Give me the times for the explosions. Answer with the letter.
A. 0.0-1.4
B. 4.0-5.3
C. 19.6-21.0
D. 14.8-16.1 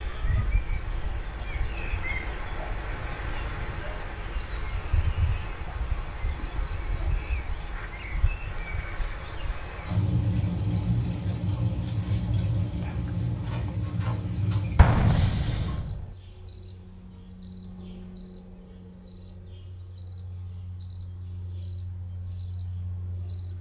D.